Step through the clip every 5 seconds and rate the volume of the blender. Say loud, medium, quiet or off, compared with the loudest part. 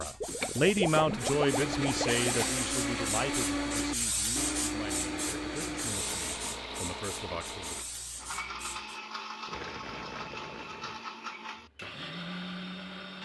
loud, medium, medium.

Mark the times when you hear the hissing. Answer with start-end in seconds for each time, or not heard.
0.0-9.0.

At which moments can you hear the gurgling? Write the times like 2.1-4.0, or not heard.
0.2-2.5, 5.2-6.7, 9.4-11.0.